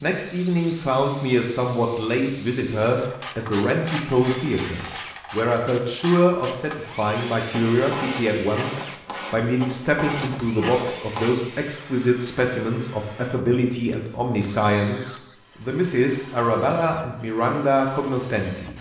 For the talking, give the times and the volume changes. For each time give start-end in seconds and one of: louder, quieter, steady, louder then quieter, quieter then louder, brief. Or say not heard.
0.0-18.7 steady.